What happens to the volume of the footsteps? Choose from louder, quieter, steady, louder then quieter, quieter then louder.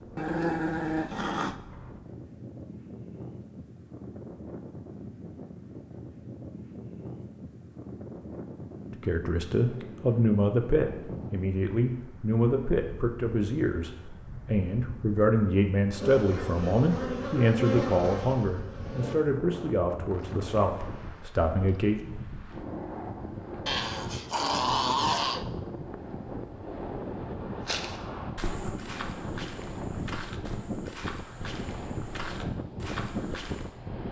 steady.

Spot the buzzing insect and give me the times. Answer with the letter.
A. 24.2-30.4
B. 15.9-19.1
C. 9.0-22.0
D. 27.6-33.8
B.